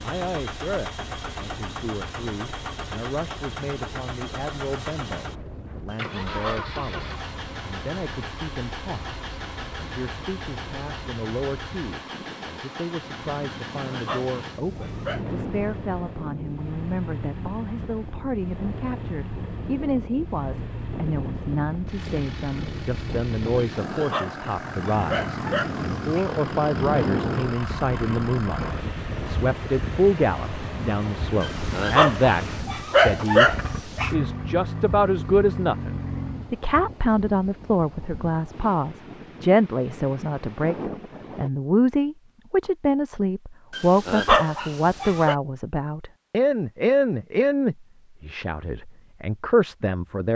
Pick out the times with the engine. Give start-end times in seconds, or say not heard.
0.0-36.5.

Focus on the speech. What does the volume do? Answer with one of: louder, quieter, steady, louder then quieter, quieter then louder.
louder.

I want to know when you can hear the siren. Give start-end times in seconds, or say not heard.
not heard.